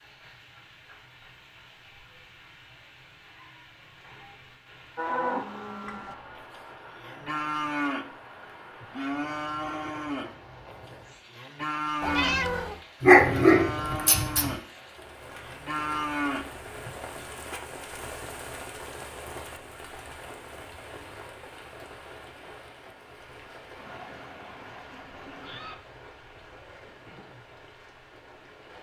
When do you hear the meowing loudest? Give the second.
12 s.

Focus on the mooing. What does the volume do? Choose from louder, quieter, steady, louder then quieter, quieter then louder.
steady.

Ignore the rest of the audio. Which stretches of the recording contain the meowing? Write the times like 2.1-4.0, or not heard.
5.8-6.5, 12.0-12.8, 23.8-25.8.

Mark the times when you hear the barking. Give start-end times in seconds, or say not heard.
13.0-14.5.